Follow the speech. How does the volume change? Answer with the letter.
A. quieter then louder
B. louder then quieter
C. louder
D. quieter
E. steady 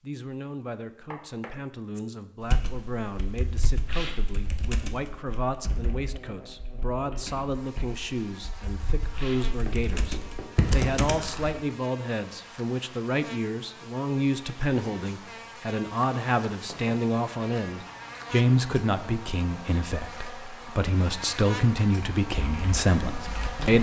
C.